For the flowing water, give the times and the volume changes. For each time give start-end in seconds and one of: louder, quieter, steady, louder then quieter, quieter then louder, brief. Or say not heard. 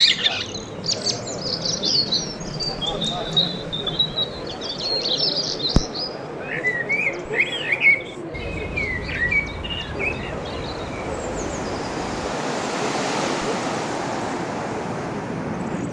0.0-15.8 louder.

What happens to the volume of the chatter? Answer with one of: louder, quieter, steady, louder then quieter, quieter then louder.
steady.